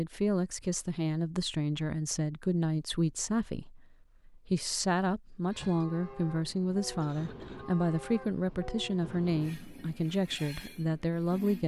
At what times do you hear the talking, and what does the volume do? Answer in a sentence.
You can hear the talking from 0.0 to 11.6 s, at a steady volume.